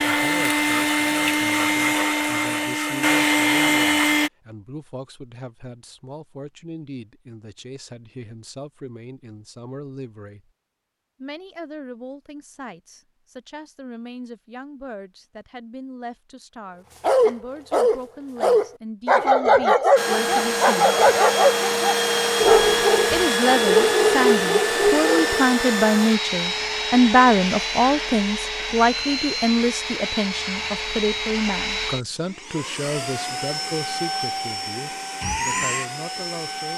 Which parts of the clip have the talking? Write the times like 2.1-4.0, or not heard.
0.0-10.5, 11.2-21.0, 23.1-36.7.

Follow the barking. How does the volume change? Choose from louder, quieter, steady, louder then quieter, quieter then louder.
steady.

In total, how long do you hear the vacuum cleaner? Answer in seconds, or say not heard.
21 s.